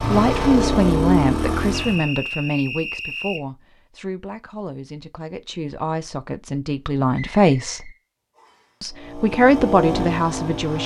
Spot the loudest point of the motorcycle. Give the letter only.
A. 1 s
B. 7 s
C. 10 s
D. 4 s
A.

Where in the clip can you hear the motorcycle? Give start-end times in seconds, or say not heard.
0.0-2.0, 8.9-10.8.